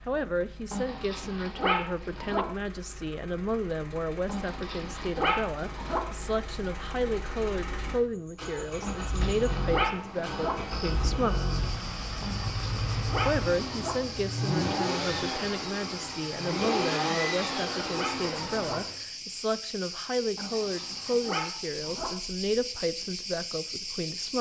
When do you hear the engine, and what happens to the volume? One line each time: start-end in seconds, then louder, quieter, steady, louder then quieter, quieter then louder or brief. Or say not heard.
0.0-19.0 louder.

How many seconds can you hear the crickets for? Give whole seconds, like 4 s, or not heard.
16 s.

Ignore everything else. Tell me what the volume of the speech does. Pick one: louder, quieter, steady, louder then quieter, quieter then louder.
steady.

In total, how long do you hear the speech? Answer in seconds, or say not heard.
22 s.